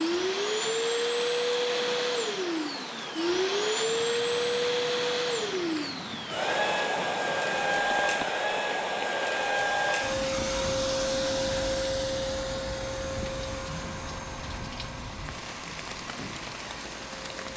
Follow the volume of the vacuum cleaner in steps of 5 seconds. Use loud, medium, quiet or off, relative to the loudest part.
loud, loud, loud, quiet.